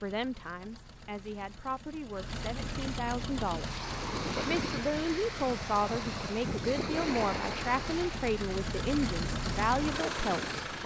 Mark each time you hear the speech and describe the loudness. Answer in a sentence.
The speech can be heard from 0.0 to 10.8 s, getting louder.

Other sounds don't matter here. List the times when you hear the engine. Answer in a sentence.
The engine can be heard from 0.0 to 10.8 s.